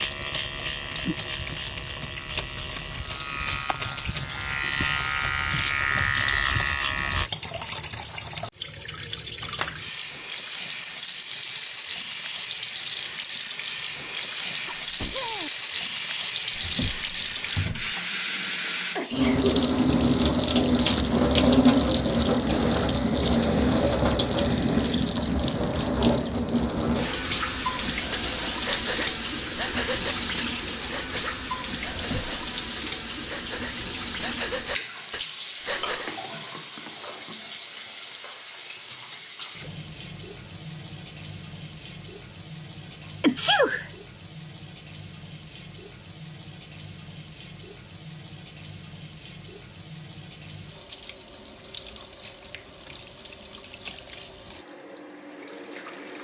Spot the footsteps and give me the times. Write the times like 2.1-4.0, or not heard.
not heard.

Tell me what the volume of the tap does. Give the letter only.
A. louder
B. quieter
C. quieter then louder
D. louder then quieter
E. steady
D.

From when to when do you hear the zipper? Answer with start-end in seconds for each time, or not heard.
not heard.